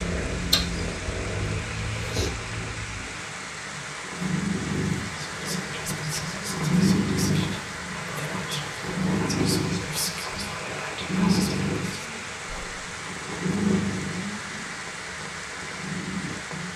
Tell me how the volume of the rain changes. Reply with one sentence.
The loudness of the rain stays about the same.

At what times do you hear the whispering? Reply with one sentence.
You can hear the whispering from 5.2 to 12.8 s.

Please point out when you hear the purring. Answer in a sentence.
You can hear the purring from 0.0 to 16.7 s.